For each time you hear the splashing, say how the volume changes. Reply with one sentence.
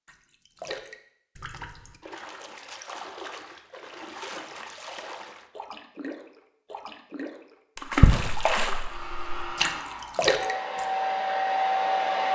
The splashing can be heard from 0.1 to 10.8 s, getting louder.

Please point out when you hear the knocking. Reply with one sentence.
You can't hear the knocking here.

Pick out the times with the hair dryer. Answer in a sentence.
You can hear the hair dryer from 8.8 to 12.3 s.